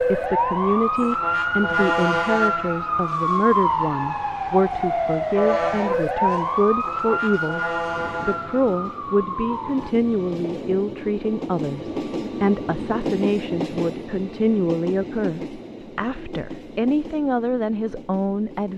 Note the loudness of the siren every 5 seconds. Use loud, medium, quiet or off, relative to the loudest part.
loud, loud, off, off.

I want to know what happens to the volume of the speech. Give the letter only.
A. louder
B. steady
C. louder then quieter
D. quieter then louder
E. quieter
B.